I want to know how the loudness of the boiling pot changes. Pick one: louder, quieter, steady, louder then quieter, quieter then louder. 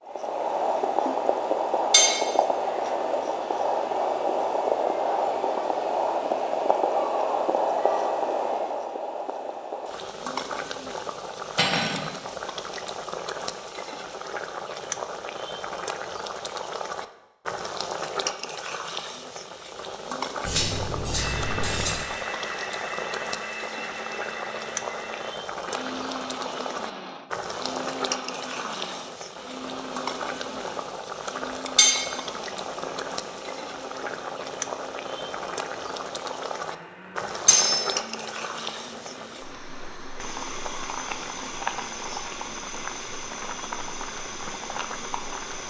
quieter.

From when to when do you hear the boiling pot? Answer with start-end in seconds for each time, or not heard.
0.1-45.6.